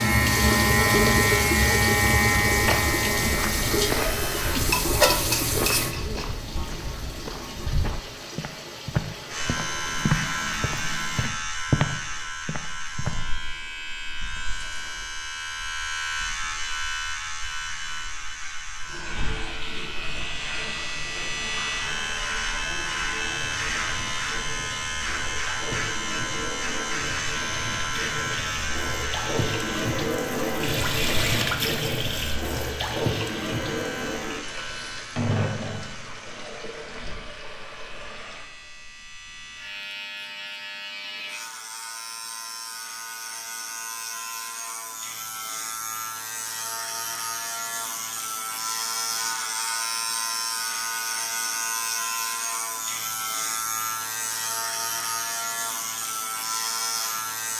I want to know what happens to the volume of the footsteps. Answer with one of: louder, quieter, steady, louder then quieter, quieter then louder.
louder.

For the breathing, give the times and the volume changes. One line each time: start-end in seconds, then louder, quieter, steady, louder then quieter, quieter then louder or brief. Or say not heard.
not heard.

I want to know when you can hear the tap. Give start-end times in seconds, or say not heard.
0.0-11.3, 18.9-38.5.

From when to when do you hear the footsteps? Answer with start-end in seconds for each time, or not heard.
2.5-13.1.